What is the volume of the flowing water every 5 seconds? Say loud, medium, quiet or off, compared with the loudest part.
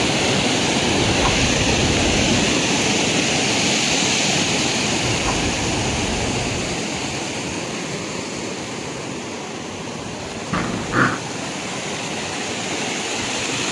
loud, medium, medium.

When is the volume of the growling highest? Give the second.
11 s.